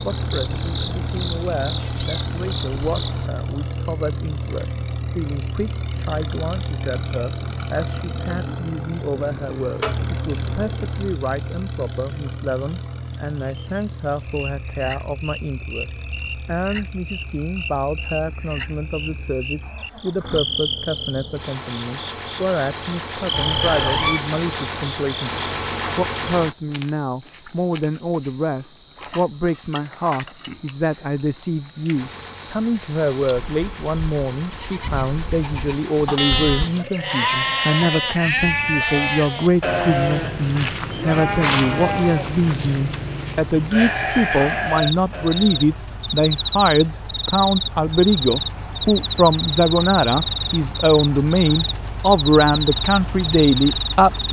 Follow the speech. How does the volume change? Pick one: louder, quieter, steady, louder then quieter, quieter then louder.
louder.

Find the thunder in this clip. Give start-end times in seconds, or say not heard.
not heard.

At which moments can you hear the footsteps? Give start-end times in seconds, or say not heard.
not heard.